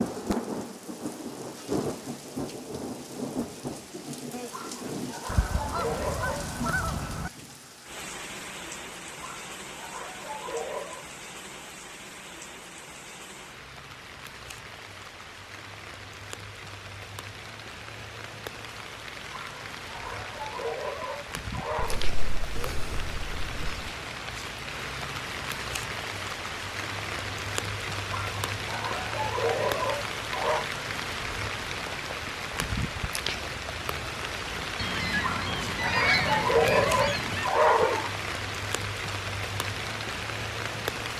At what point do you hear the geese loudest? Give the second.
36 s.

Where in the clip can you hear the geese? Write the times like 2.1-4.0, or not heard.
5.2-7.3, 21.8-23.9, 34.8-37.5.